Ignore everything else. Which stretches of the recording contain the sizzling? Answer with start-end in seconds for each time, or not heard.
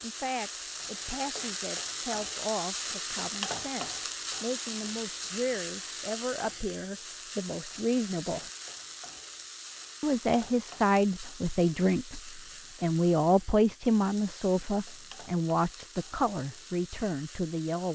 0.0-17.9.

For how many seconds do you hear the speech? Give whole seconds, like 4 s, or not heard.
16 s.